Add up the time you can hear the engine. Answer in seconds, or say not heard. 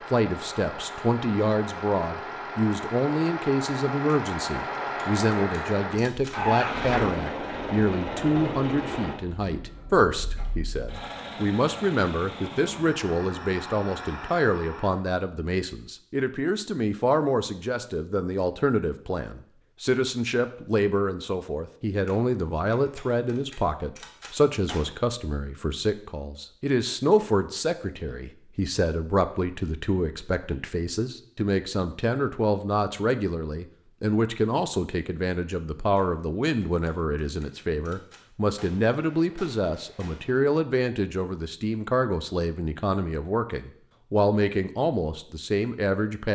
15 s.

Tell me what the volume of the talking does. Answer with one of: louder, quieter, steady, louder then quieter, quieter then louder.
steady.